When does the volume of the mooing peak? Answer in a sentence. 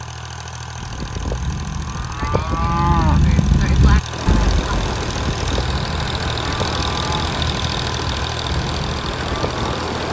The loudest moment of the mooing is at 3 seconds.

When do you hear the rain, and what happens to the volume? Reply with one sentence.
You can hear the rain from 4.0 to 10.0 s, at a steady volume.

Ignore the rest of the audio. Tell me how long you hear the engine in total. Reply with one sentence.
You can hear the engine for 10 seconds altogether.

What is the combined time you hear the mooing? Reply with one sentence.
The mooing can be heard for 9 seconds in total.